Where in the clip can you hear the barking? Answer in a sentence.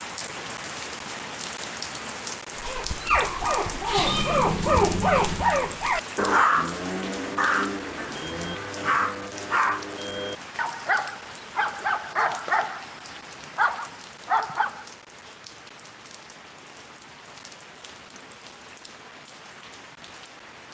The barking can be heard from 2.5 to 14.8 s.